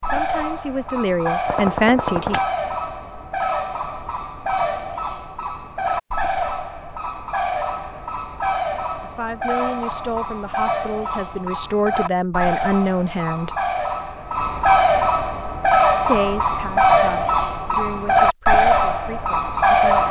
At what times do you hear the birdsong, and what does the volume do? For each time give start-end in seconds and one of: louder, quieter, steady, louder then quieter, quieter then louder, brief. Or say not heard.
0.0-20.0 louder.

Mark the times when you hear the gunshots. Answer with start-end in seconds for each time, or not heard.
1.4-2.5.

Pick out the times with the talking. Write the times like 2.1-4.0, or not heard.
0.0-2.5, 9.0-13.5, 16.1-20.0.